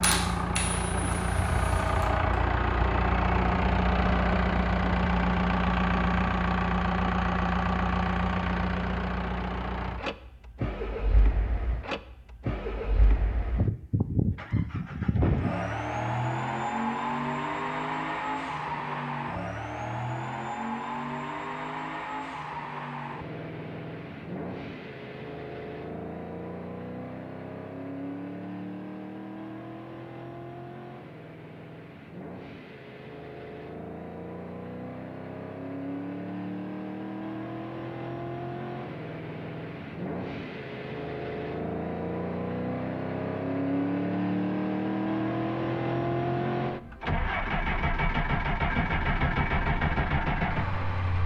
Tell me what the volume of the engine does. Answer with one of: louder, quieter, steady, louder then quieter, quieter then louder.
quieter then louder.